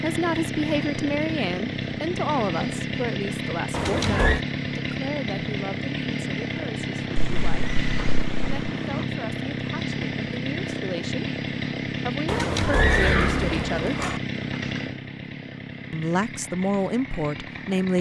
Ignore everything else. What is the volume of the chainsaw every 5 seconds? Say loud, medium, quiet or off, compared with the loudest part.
loud, loud, loud, medium.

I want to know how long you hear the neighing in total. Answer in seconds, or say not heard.
4 s.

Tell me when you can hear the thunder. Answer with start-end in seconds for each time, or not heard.
7.1-9.1.